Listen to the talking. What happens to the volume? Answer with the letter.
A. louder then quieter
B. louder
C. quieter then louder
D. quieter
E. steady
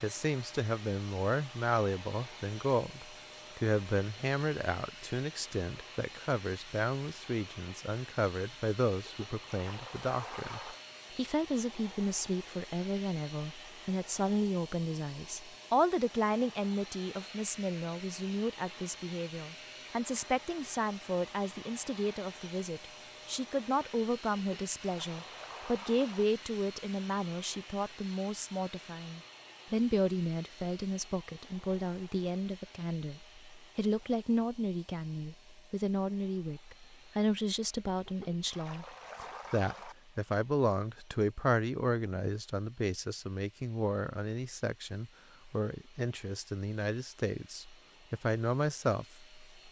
E.